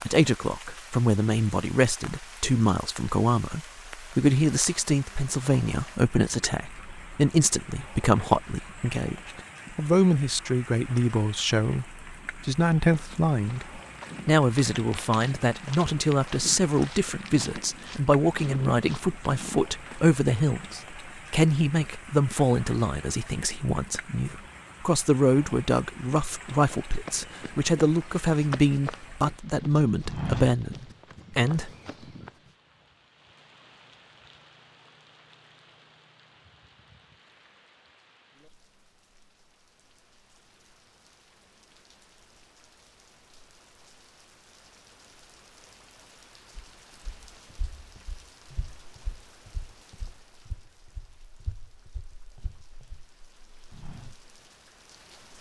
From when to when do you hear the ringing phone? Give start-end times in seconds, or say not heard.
not heard.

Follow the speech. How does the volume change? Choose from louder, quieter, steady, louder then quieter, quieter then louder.
steady.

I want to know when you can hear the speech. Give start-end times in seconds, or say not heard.
0.1-31.7.